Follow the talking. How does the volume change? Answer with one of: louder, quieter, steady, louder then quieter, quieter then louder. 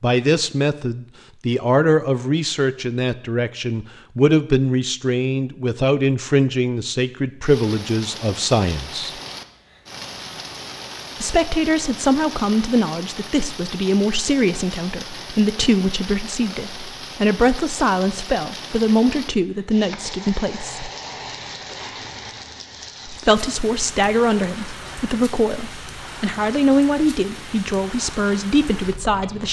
steady.